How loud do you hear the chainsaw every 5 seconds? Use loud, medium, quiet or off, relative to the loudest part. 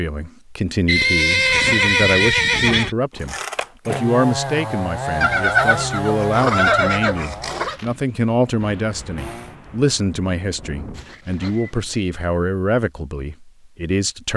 loud, loud, off.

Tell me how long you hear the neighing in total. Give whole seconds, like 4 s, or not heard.
6 s.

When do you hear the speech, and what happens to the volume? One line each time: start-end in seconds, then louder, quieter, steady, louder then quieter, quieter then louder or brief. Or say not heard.
0.0-14.3 steady.